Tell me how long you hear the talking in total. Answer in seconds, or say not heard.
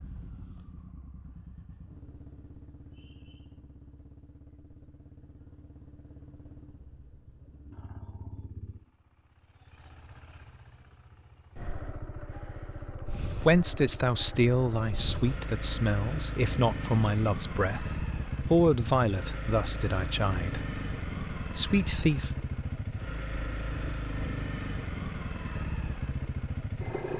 8 s.